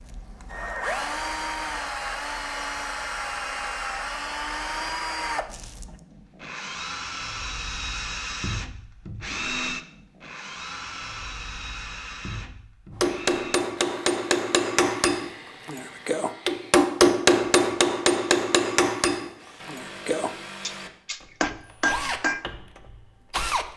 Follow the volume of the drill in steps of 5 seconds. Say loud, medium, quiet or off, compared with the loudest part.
loud, loud, medium, quiet, loud.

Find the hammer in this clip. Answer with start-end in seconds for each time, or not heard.
13.0-22.4.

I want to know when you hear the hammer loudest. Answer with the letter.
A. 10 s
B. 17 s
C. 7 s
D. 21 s
B.